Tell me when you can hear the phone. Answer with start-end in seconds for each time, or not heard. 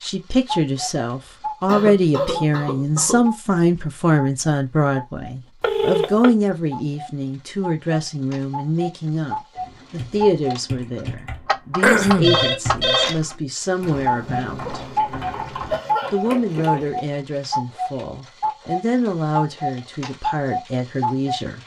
5.6-6.3, 12.2-13.4.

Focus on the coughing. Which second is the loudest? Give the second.
12 s.